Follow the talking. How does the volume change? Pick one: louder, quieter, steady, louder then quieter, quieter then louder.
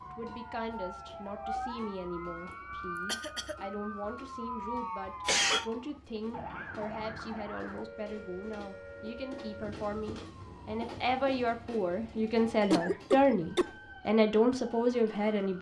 louder.